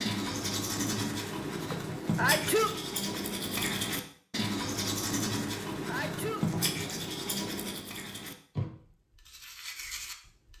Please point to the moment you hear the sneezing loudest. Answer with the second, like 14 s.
2 s.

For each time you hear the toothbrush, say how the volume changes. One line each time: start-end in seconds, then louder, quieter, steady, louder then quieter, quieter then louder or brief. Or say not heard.
0.0-10.5 quieter.